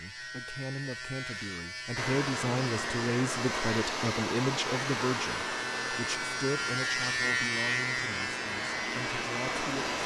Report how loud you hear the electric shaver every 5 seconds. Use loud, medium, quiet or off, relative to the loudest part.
medium, loud.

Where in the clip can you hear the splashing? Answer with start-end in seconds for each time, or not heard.
not heard.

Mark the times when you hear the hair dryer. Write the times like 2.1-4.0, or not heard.
1.9-10.0.